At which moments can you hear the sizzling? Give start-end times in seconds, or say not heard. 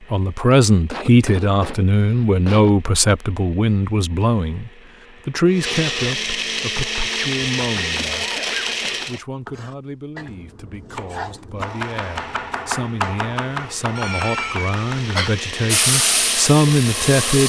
15.7-17.4.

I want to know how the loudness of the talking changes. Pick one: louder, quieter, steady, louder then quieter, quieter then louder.
quieter then louder.